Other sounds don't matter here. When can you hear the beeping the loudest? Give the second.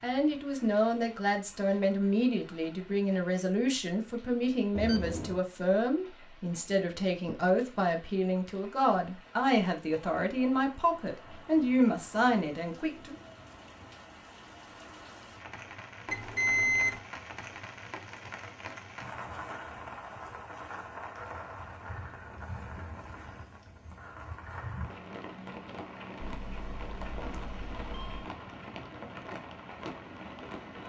17 s.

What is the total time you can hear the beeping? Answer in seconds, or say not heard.
4 s.